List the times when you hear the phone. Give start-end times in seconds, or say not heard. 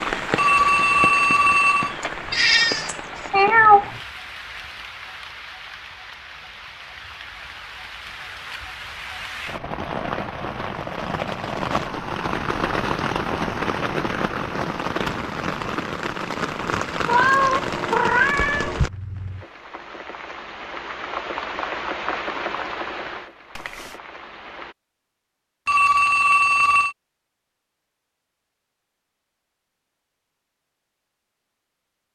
0.3-1.9, 25.6-26.9.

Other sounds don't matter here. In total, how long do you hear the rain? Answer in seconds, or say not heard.
25 s.